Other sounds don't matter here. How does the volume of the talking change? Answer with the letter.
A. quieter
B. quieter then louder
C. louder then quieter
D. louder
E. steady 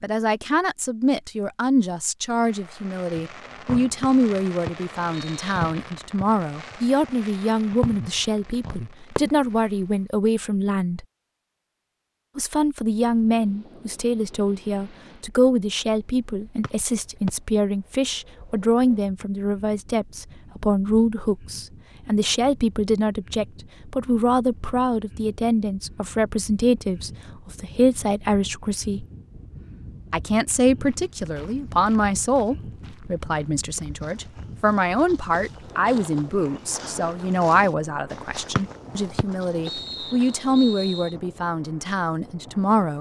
E.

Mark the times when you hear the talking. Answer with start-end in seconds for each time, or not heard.
0.0-11.1, 12.3-29.1, 30.1-42.9.